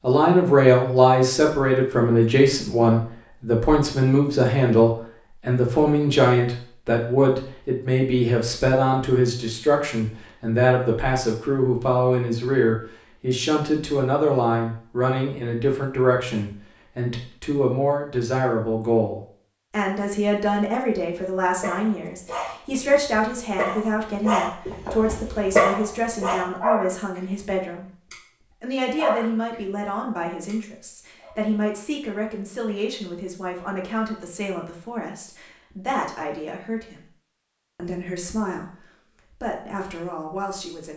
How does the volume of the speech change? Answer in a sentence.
The volume of the speech goes down.